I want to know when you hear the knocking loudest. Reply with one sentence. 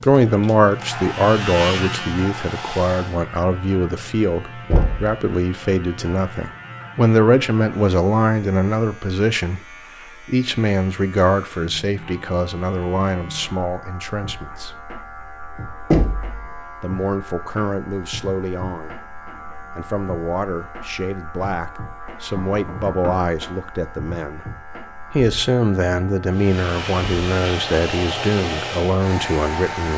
The loudest moment of the knocking is at 16 seconds.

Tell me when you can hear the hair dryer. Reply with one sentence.
You can hear the hair dryer from 0.0 to 3.2 s and from 26.3 to 29.9 s.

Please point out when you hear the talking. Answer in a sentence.
You can hear the talking from 0.0 to 9.6 s, from 10.2 to 14.8 s, from 16.8 to 18.9 s, from 19.8 to 24.4 s and from 25.1 to 29.9 s.